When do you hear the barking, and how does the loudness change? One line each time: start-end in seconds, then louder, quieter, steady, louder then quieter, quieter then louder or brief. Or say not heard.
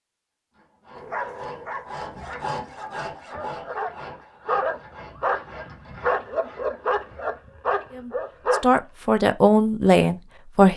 0.9-8.7 louder.